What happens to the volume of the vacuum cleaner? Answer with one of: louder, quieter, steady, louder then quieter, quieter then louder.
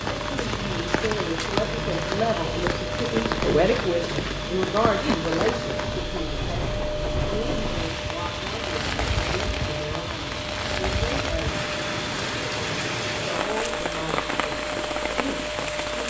steady.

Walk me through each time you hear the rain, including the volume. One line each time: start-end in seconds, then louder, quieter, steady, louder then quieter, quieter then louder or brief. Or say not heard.
0.0-16.0 steady.